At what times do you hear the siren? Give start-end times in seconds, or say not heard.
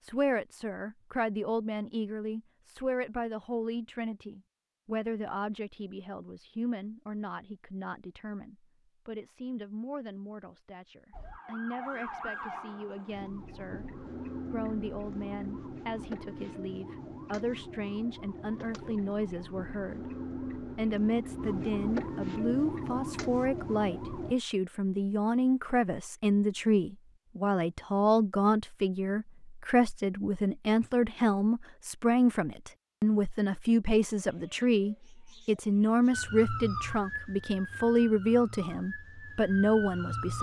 11.1-24.4, 36.1-40.3.